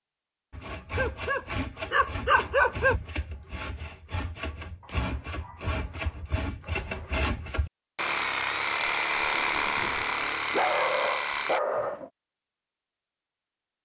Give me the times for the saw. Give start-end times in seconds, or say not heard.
0.5-11.6.